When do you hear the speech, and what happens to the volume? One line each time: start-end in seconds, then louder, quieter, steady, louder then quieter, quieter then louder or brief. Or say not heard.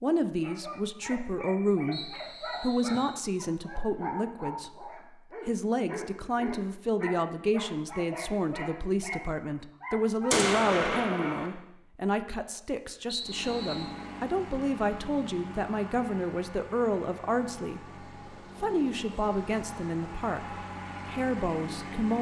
0.0-22.1 steady.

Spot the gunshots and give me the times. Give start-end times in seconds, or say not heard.
10.3-11.4.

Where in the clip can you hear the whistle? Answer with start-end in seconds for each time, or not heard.
1.9-3.2, 13.1-13.9.